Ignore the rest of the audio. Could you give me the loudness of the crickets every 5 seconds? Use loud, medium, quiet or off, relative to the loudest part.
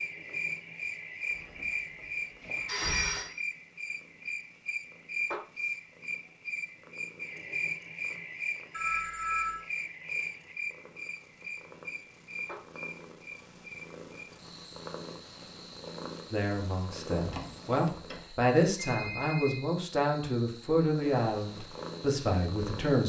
loud, loud, medium, quiet, quiet.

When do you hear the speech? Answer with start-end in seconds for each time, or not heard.
16.3-23.0.